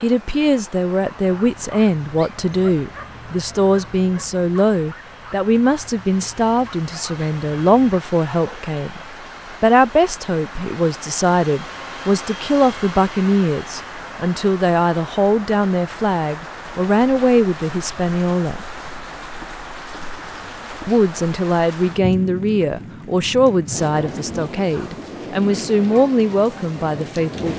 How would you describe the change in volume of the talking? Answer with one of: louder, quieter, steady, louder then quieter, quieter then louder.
steady.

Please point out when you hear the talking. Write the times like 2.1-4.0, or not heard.
0.0-9.0, 9.6-18.6, 20.9-27.5.